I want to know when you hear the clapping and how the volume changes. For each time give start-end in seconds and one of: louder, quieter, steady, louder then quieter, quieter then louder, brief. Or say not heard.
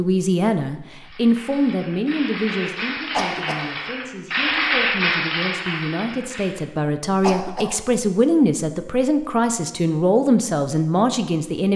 1.0-6.7 louder then quieter.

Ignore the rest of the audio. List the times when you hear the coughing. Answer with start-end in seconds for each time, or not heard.
3.1-3.6, 7.2-7.8.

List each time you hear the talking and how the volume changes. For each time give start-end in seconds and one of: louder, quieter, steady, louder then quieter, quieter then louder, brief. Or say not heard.
0.0-11.7 quieter then louder.